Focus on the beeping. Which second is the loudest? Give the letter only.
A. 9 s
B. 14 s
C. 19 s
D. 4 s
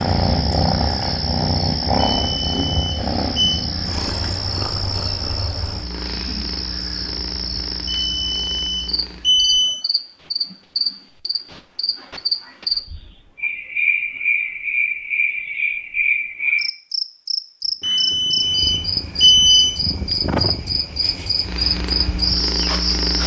C.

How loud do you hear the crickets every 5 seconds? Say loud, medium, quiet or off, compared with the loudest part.
medium, medium, loud, loud, loud.